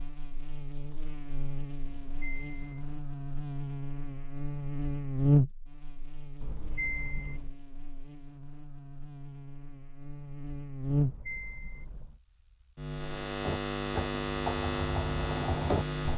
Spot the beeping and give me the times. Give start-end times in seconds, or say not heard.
1.9-3.0, 6.4-7.5, 10.9-12.2.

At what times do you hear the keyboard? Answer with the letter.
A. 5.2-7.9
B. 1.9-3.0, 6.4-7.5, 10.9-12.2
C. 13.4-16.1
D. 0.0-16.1
C.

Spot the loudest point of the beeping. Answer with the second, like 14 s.
7 s.